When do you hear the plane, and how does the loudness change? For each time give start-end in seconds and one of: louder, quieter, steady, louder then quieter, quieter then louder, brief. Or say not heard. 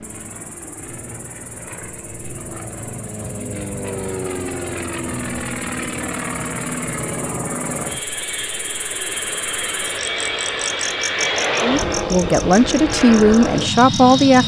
0.0-14.4 louder.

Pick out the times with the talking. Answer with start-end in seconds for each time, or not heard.
11.6-14.4.